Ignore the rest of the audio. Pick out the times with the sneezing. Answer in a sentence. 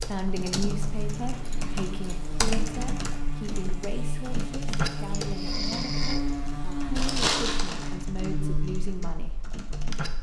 The sneezing can be heard from 5.2 to 6.2 s.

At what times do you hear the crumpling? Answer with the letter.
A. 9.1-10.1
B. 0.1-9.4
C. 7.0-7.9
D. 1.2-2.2
C.